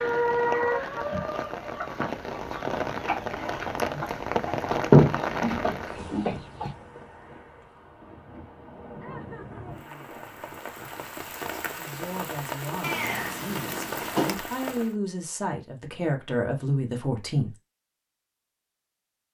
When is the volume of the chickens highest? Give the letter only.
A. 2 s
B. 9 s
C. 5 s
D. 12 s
C.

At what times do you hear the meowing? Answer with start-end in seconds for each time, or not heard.
12.8-14.3.